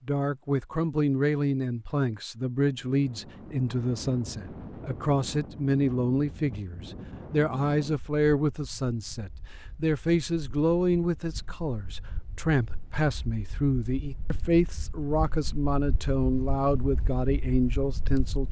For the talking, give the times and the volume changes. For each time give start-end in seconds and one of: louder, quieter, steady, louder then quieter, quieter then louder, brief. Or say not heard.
0.1-18.4 steady.